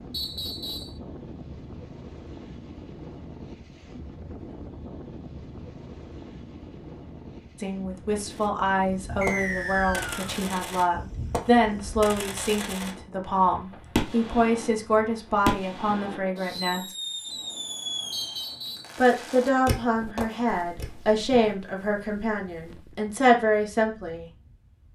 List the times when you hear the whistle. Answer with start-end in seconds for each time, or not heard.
0.1-0.9, 9.2-10.3, 18.1-18.9.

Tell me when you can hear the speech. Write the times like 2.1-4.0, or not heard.
7.5-16.9, 18.9-24.2.